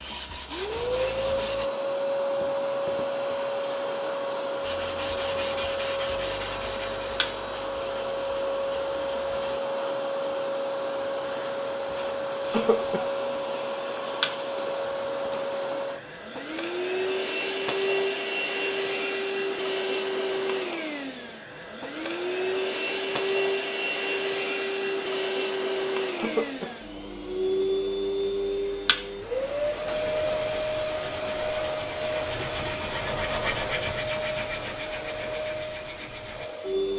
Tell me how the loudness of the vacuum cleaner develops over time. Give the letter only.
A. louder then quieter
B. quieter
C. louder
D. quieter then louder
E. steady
E.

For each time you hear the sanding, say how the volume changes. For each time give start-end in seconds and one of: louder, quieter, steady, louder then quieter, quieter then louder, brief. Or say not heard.
0.0-1.7 brief
4.6-9.6 quieter
29.9-36.5 louder then quieter.